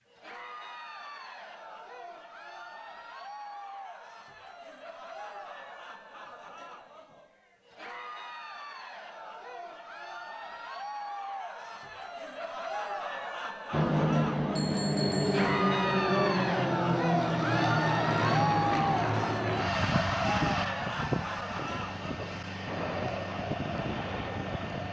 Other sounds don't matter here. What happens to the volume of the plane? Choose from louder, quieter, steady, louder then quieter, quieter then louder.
quieter.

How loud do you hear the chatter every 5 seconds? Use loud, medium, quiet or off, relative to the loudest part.
quiet, quiet, medium, loud, medium.